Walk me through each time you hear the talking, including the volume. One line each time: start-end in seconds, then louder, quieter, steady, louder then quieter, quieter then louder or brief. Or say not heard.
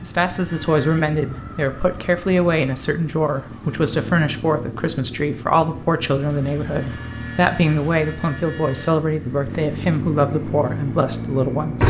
0.0-11.8 steady.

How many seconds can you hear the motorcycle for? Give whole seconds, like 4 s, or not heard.
12 s.